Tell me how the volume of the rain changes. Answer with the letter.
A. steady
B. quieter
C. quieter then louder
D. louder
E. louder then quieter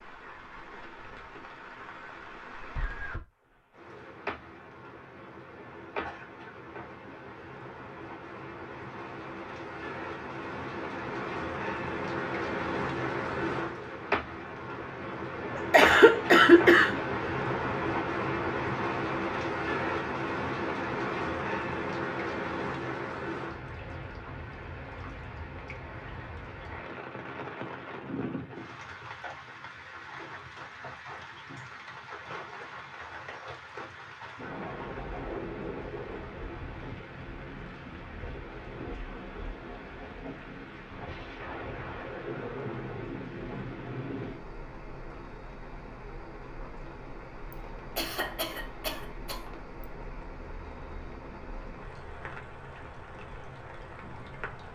E.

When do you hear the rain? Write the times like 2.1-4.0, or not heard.
0.0-54.7.